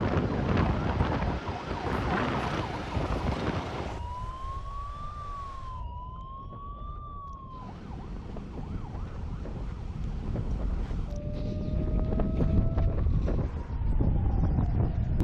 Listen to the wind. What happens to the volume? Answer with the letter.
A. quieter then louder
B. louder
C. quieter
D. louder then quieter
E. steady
A.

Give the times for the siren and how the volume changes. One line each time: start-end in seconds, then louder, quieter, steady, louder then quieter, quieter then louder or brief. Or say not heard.
0.0-15.1 quieter.